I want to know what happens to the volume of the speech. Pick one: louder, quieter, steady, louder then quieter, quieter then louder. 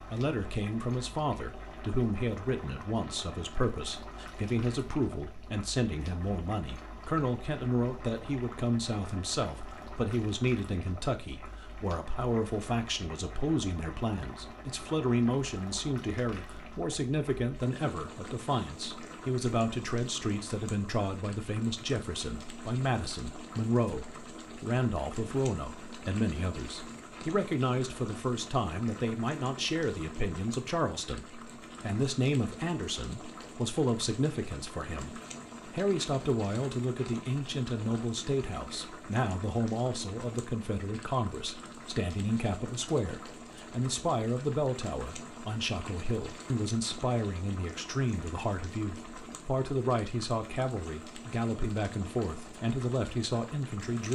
steady.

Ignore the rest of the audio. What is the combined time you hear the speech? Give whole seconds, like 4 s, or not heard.
54 s.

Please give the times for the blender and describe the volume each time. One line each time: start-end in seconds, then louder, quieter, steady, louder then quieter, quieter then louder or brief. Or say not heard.
not heard.